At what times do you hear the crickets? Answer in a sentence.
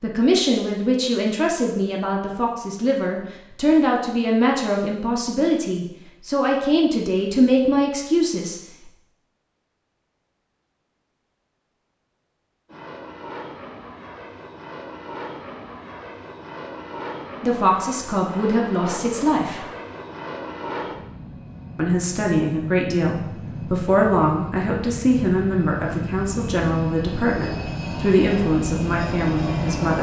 The crickets can't be heard in this clip.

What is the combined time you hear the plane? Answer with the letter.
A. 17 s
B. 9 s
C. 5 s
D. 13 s
A.